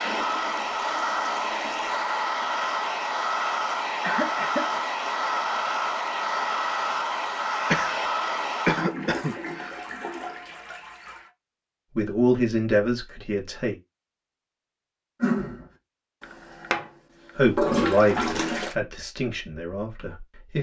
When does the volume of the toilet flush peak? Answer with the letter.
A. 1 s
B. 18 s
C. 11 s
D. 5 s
B.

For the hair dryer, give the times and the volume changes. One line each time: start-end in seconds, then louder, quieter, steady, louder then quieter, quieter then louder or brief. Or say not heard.
0.0-8.9 steady.